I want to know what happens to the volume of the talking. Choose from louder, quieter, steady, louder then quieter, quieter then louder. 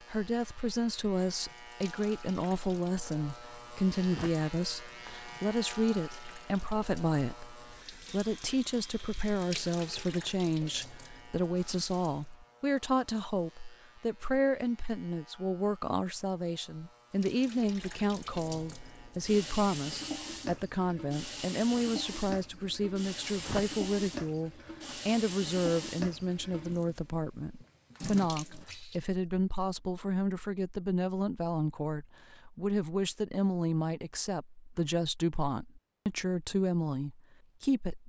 steady.